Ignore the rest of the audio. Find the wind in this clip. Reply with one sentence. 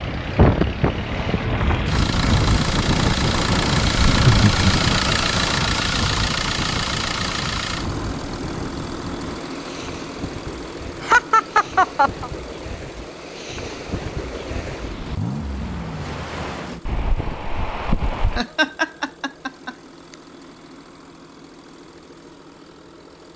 You can hear the wind from 0.0 to 18.4 s.